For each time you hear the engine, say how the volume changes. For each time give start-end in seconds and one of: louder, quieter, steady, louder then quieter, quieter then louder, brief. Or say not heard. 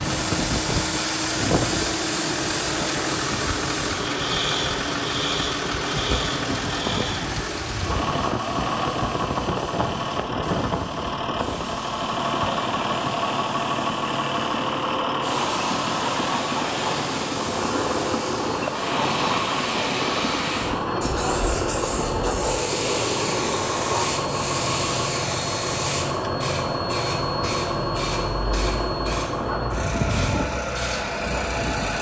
0.0-31.9 steady.